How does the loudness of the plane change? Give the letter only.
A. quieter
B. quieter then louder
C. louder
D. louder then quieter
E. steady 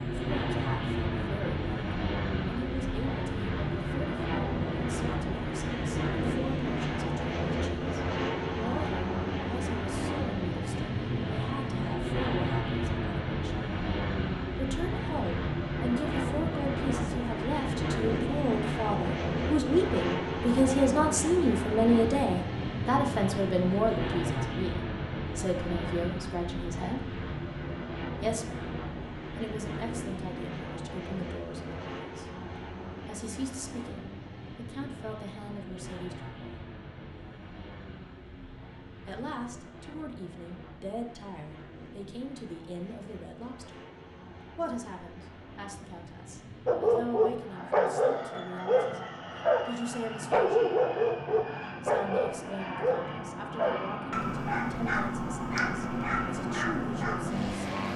B.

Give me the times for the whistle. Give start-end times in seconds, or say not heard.
not heard.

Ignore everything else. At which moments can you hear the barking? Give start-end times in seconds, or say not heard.
46.6-57.5.